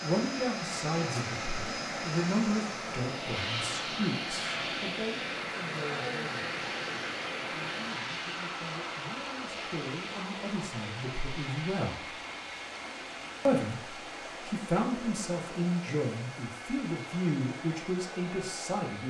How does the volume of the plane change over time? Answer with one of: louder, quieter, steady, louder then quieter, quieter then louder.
quieter.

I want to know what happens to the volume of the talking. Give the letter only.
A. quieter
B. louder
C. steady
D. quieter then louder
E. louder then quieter
D.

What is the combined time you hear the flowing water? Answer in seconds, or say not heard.
19 s.